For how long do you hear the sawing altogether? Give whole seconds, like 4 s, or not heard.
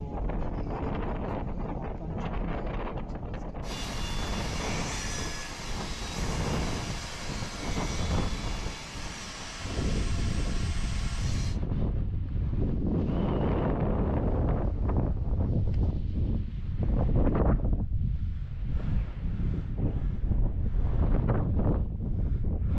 8 s.